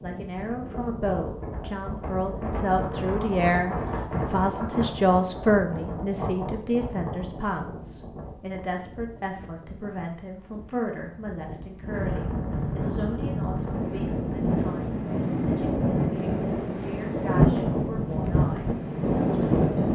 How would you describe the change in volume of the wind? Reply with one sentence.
The loudness of the wind goes down, then up.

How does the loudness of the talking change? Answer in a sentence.
The volume of the talking goes down.